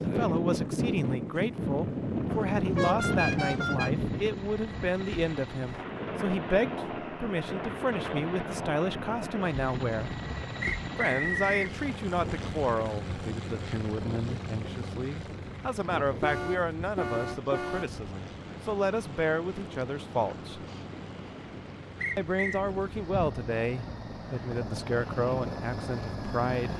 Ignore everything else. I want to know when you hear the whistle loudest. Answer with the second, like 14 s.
11 s.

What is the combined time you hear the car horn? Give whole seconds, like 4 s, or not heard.
3 s.